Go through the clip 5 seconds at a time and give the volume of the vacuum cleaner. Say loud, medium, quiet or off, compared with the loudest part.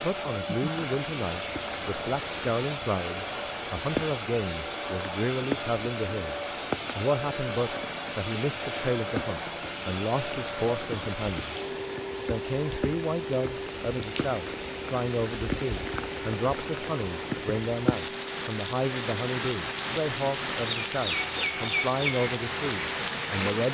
loud, loud, loud, medium, medium.